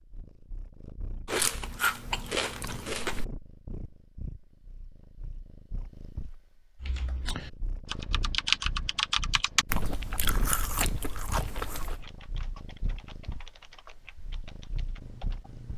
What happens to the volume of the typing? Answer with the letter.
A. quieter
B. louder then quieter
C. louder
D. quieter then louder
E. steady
B.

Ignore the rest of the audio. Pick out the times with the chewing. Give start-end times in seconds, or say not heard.
1.2-3.2, 9.7-12.1.